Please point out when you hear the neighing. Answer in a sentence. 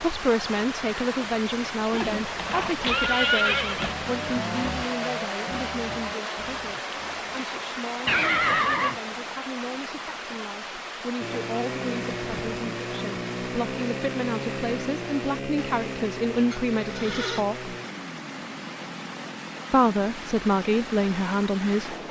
You can hear the neighing from 1.9 to 4.0 s, from 8.1 to 9.0 s and from 16.5 to 17.4 s.